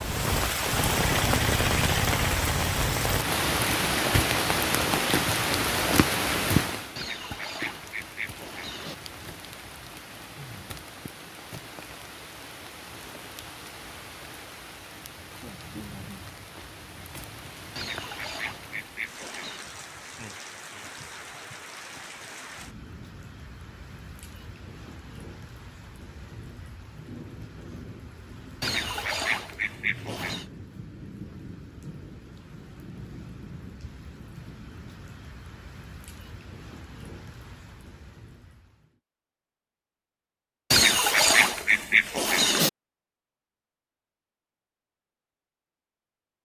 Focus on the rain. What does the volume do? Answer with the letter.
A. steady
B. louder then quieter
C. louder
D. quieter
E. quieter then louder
D.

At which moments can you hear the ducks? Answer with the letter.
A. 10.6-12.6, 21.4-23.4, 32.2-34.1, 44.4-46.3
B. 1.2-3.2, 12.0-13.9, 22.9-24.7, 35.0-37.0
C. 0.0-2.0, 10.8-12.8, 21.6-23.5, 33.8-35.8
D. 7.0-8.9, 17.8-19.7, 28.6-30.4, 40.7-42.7
D.